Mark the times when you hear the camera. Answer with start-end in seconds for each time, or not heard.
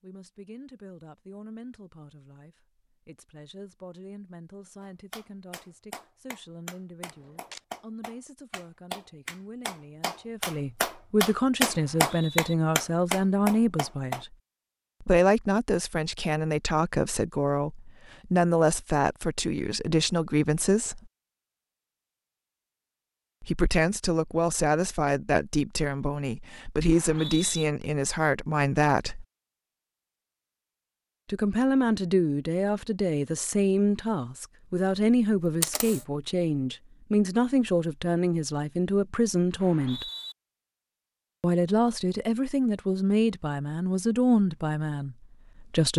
7.0-7.6, 35.6-36.0.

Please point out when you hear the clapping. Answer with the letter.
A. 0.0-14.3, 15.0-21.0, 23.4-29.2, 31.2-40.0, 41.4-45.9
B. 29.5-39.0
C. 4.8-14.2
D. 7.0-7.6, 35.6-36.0
C.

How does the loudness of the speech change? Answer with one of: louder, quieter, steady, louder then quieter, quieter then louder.
louder.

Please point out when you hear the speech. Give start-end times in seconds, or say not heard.
0.0-14.3, 15.0-21.0, 23.4-29.2, 31.2-40.0, 41.4-45.9.